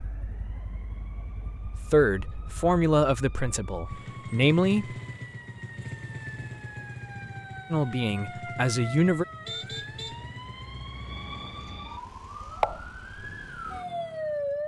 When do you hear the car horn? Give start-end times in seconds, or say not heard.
9.4-10.2.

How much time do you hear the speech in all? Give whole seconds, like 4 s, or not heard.
5 s.